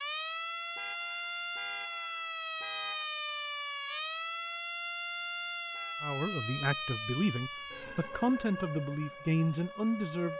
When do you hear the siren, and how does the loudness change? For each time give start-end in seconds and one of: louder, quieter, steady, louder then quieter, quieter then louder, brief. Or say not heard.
0.0-10.3 quieter.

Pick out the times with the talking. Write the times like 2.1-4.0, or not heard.
6.0-10.3.